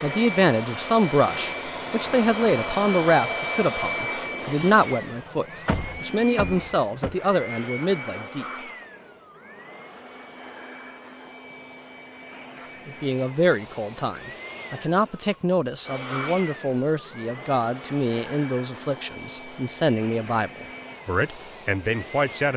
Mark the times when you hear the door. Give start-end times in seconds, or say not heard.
5.7-7.2.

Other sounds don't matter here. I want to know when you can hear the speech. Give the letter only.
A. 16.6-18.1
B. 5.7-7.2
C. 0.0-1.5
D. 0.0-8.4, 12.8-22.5
D.